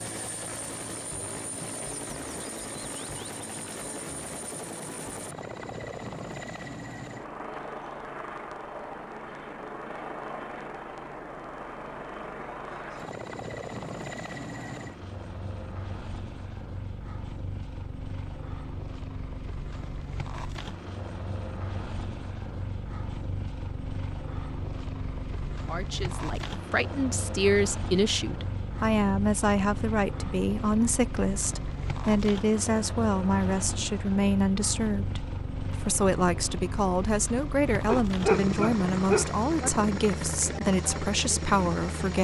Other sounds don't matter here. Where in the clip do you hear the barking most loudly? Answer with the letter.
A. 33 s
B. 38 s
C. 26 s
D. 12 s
B.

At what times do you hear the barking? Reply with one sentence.
You can hear the barking from 37.7 to 39.7 s.